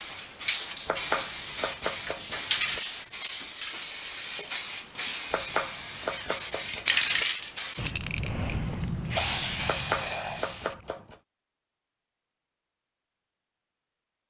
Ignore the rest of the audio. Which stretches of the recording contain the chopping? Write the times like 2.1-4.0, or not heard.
0.8-2.8, 5.3-7.2, 9.7-11.2.